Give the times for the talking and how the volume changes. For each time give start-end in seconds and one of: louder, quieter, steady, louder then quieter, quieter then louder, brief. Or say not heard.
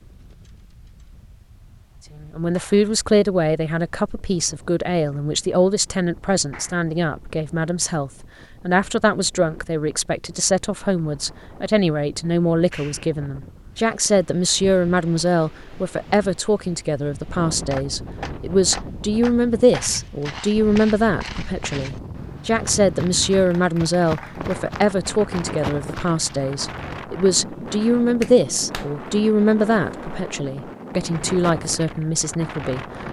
2.1-32.9 steady.